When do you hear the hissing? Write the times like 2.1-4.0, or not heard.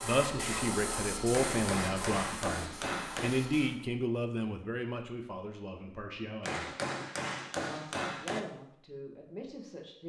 0.0-3.8.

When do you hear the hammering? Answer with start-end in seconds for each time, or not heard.
1.3-3.3, 6.5-8.4.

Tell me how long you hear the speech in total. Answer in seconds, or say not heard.
9 s.